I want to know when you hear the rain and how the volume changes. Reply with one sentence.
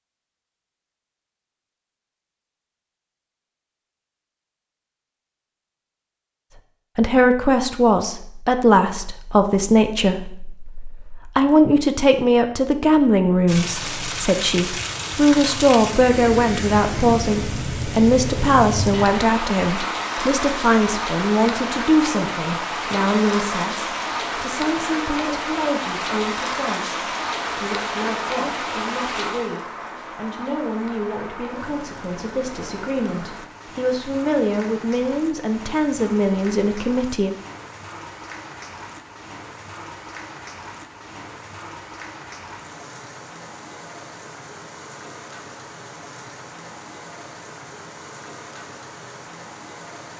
You can hear the rain from 13.4 to 50.1 s, getting quieter.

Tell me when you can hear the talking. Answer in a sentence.
The talking can be heard from 7.0 to 37.3 s.